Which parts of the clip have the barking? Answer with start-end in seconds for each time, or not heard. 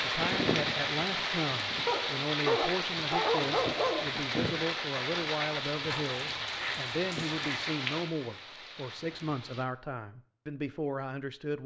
1.9-4.0, 5.8-7.7.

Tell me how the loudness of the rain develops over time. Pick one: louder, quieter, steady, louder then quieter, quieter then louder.
quieter.